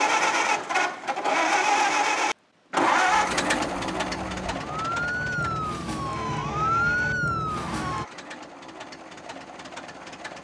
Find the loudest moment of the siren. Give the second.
7 s.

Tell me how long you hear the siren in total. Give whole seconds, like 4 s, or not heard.
5 s.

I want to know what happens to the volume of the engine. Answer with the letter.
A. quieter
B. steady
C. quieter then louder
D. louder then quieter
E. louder
A.